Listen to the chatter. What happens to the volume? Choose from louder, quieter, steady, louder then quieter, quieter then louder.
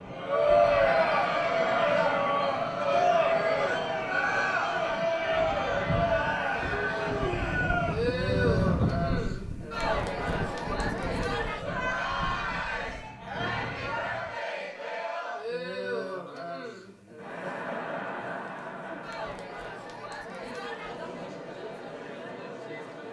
quieter.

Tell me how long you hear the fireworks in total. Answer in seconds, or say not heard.
not heard.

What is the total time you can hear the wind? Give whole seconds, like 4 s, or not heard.
14 s.